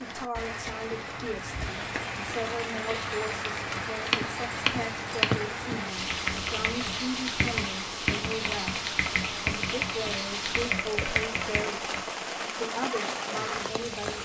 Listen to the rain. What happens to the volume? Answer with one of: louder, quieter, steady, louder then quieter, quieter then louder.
steady.